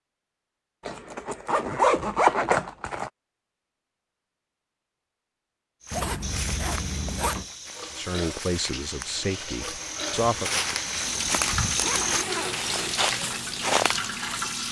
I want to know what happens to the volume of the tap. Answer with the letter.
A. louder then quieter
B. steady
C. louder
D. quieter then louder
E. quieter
C.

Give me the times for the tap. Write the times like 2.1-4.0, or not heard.
7.6-14.6.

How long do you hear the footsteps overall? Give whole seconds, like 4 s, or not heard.
8 s.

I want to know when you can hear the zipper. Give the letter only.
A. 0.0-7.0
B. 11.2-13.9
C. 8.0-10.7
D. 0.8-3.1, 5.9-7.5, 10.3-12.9
D.